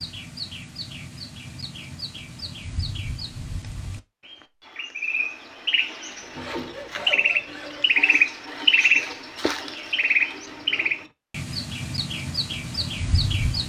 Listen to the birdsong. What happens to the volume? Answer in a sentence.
The volume of the birdsong goes up, then down.